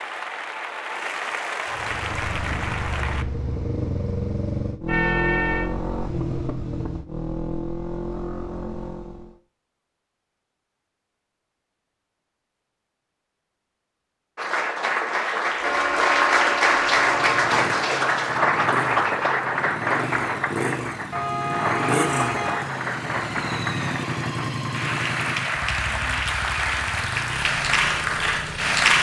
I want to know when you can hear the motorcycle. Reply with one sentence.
You can hear the motorcycle from 1.6 to 9.3 s and from 16.8 to 28.9 s.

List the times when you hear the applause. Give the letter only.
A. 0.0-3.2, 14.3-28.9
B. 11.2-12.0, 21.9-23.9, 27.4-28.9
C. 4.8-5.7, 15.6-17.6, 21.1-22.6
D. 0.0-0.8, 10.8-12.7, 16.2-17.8
A.